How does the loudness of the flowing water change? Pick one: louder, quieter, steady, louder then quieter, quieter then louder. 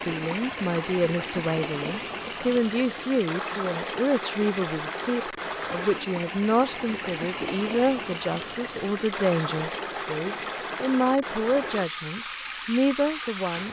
steady.